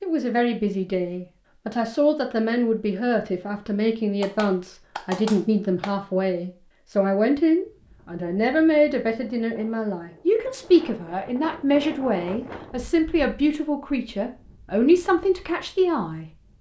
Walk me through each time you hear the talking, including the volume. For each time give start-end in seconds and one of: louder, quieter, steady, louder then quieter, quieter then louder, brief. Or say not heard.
0.0-16.5 steady.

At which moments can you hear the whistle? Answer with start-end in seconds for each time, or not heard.
not heard.